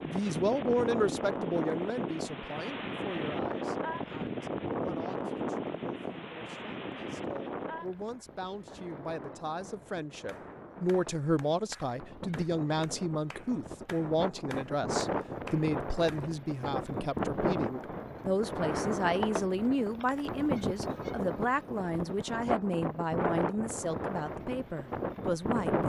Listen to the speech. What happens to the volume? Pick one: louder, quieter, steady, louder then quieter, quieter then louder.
quieter then louder.